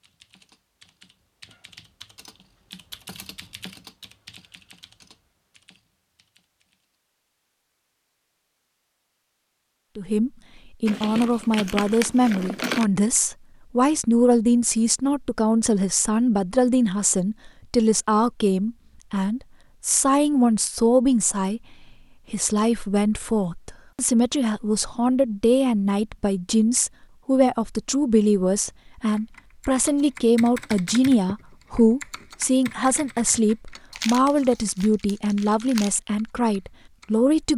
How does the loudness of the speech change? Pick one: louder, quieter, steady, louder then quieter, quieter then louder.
steady.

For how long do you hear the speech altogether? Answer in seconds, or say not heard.
27 s.